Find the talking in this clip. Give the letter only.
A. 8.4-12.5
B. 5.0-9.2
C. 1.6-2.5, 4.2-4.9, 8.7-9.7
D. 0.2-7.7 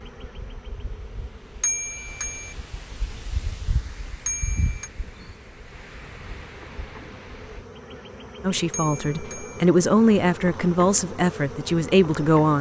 A.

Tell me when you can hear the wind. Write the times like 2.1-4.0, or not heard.
0.2-7.7.